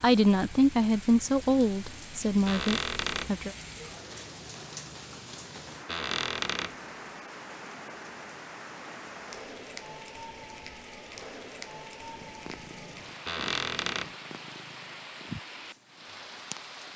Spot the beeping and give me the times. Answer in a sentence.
The beeping can't be heard in this clip.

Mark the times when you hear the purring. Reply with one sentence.
The purring can be heard from 12.1 to 16.9 s.